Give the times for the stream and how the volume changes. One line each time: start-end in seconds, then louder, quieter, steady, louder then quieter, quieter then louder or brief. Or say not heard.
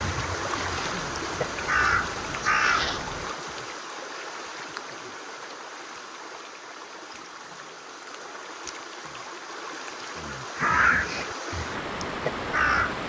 0.0-13.0 quieter then louder.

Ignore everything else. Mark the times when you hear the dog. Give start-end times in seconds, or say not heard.
not heard.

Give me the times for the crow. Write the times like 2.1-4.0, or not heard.
0.0-3.2, 10.6-13.0.